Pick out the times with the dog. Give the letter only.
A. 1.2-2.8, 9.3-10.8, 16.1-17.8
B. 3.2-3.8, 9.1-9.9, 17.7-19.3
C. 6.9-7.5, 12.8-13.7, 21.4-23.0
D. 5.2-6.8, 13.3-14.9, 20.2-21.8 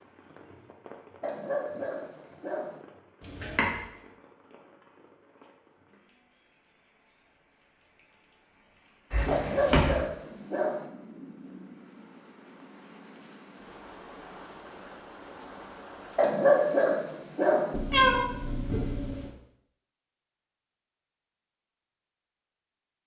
A.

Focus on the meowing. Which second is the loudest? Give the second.
18 s.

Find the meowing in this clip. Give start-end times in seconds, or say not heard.
3.2-3.8, 9.1-9.9, 17.7-19.3.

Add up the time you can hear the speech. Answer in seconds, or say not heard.
not heard.